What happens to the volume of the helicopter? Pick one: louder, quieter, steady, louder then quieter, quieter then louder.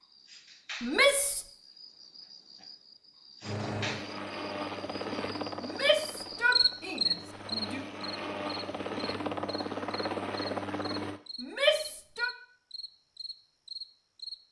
quieter then louder.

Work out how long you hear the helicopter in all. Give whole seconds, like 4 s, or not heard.
8 s.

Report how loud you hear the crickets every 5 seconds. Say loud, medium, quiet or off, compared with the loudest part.
quiet, loud, medium.